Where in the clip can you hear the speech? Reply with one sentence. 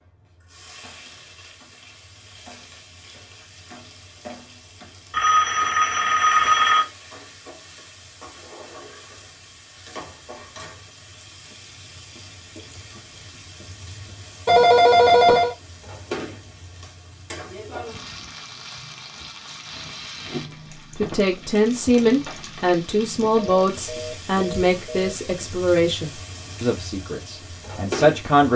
You can hear the speech from 20.9 to 28.5 s.